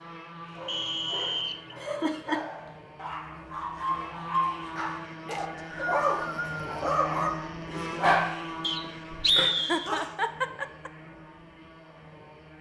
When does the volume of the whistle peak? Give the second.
9 s.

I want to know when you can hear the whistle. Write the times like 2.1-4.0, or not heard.
0.7-1.8, 5.3-6.6, 8.6-9.9.